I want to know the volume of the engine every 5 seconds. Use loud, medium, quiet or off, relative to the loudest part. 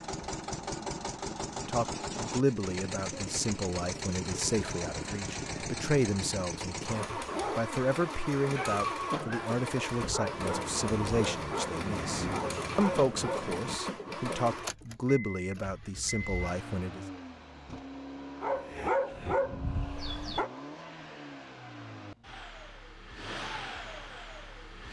loud, loud, loud, medium, medium.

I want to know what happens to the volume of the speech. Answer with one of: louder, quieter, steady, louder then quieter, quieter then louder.
steady.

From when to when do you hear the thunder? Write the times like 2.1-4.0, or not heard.
10.4-13.8.